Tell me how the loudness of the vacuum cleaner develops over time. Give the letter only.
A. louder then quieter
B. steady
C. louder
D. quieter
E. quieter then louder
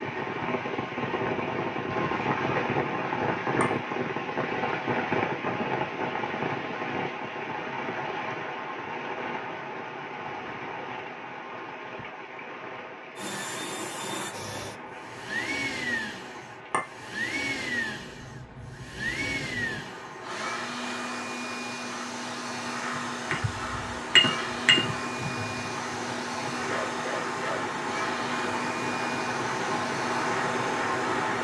B.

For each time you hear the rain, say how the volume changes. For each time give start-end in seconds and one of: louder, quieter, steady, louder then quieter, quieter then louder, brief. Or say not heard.
0.0-31.3 quieter then louder.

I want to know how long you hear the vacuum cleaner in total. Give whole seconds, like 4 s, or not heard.
18 s.